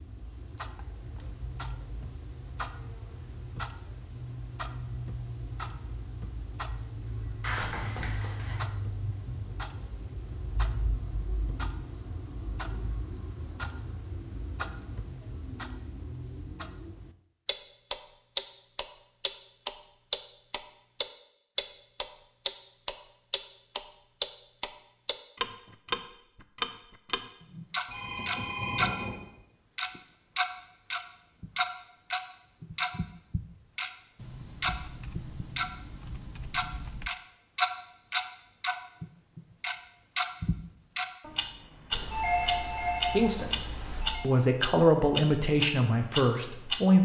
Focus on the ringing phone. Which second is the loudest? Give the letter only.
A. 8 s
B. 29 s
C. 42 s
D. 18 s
C.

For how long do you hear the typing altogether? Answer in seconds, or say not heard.
3 s.